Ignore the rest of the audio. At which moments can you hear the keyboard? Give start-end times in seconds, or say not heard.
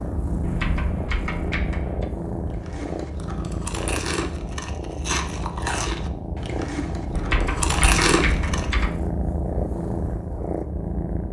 0.4-2.0, 7.1-8.9.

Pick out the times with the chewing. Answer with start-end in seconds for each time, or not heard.
2.5-8.8.